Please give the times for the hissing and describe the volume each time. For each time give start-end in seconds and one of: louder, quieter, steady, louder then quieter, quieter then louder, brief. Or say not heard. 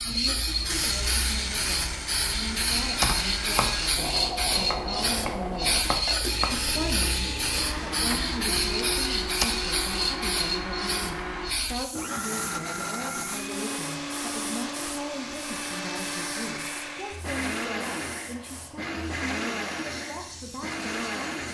0.0-21.4 quieter.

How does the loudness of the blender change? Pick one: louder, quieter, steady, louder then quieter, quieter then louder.
steady.